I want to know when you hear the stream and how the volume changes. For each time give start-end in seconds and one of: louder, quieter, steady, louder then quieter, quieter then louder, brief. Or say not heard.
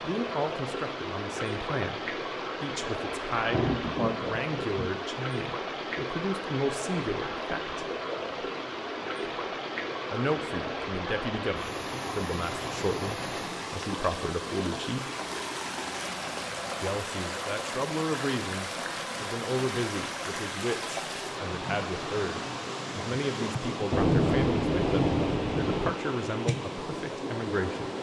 0.0-27.9 steady.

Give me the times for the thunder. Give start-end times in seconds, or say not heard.
3.4-5.0, 23.9-25.9.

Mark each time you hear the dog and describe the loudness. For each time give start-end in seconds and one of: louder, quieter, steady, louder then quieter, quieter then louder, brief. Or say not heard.
not heard.